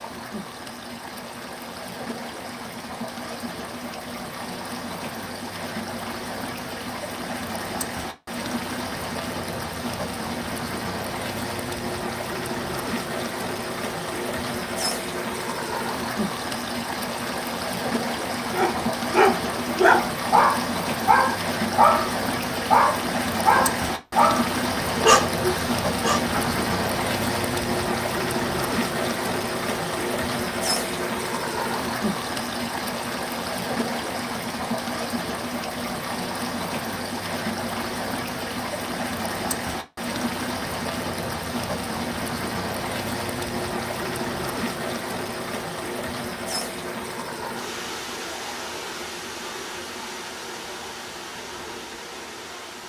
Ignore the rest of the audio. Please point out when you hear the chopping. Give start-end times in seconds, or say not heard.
not heard.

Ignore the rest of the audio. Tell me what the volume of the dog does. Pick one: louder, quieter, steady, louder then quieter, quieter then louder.
steady.